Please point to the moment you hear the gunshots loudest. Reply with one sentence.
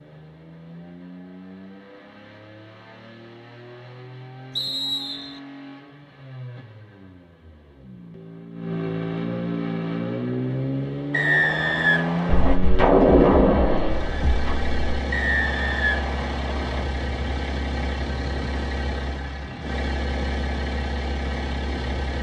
The loudest moment of the gunshots is at 13 seconds.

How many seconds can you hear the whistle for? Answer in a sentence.
The whistle can be heard for 4 seconds in total.